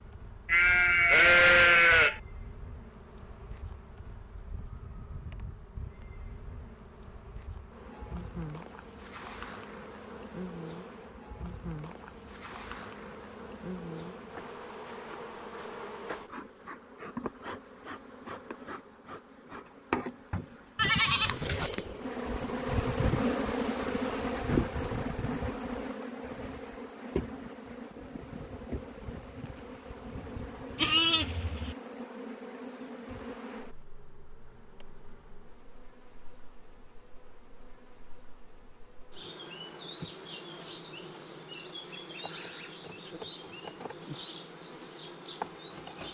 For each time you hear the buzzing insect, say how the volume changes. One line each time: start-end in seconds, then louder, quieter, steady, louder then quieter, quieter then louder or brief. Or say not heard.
0.0-46.0 louder then quieter.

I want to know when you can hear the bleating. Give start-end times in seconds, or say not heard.
0.5-2.2, 20.8-21.6, 30.8-31.8.